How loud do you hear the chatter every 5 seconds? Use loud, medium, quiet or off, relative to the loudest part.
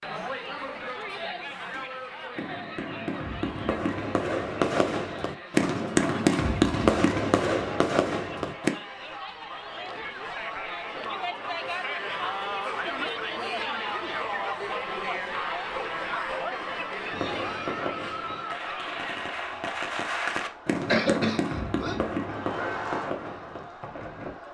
medium, medium, loud, loud, medium.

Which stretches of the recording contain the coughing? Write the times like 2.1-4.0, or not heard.
20.9-21.9.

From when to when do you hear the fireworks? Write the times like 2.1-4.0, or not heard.
1.4-8.7, 17.1-24.4.